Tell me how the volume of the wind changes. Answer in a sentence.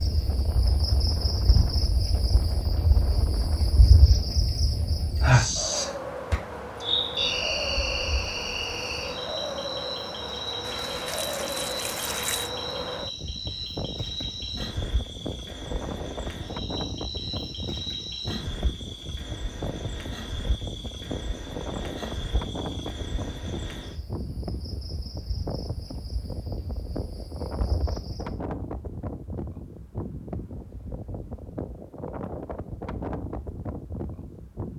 The volume of the wind stays about the same.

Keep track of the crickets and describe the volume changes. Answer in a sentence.
The loudness of the crickets goes down.